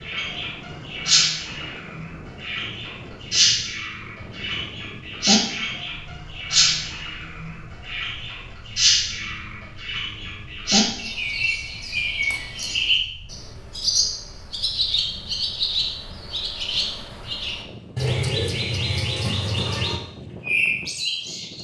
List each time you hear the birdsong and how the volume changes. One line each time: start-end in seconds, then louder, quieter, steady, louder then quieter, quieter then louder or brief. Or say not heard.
0.0-21.6 steady.